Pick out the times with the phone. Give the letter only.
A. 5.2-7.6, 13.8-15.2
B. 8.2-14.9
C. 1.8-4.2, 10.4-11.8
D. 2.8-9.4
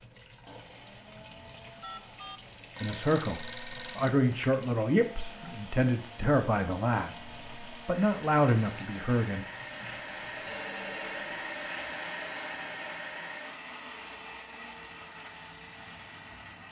C.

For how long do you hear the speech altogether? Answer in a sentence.
The speech can be heard for 7 seconds in total.